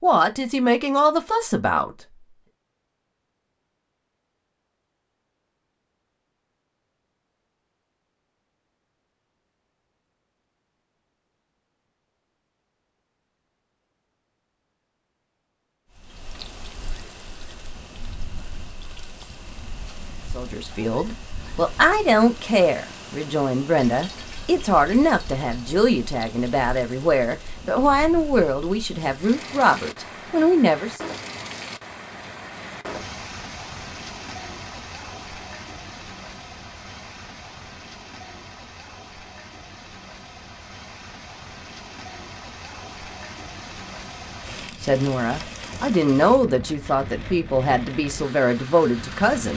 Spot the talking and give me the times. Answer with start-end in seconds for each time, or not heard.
0.0-1.9, 20.4-31.1, 44.5-49.5.